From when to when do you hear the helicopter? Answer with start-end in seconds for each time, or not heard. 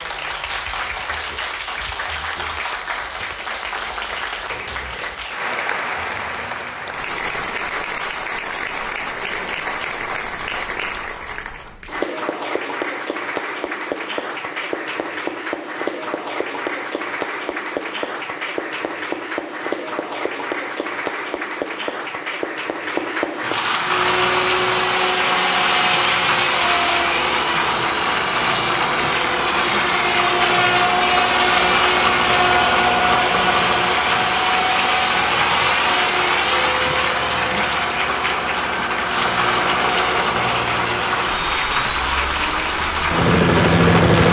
23.8-44.2.